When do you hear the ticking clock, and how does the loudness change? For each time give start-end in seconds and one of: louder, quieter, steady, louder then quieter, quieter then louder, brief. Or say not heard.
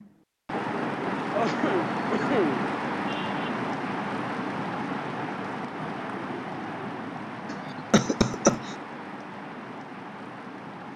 not heard.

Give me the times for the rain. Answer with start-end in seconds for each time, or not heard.
0.0-10.9.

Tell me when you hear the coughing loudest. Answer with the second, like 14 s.
8 s.